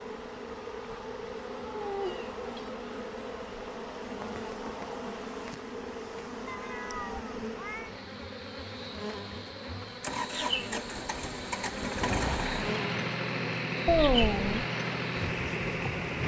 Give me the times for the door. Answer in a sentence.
You can't hear the door here.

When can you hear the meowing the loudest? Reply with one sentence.
The loudest moment of the meowing is at 14 seconds.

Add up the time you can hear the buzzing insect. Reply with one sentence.
You can hear the buzzing insect for 16 seconds altogether.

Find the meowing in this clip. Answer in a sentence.
The meowing can be heard from 1.6 to 2.8 s, from 6.5 to 7.9 s and from 13.8 to 14.7 s.